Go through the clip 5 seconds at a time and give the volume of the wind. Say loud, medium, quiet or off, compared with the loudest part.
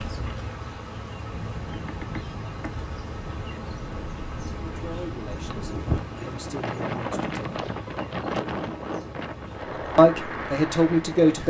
medium, loud, loud.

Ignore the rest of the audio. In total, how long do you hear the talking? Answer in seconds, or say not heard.
4 s.